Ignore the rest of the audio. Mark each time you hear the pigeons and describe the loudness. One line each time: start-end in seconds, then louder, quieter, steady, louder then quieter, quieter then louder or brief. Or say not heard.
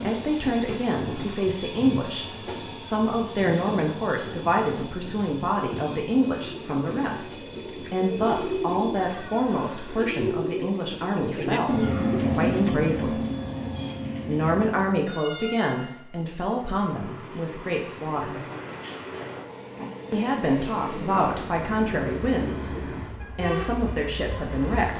6.5-15.2 louder then quieter.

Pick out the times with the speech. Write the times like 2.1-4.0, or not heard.
0.0-13.2, 14.2-18.4, 20.1-24.9.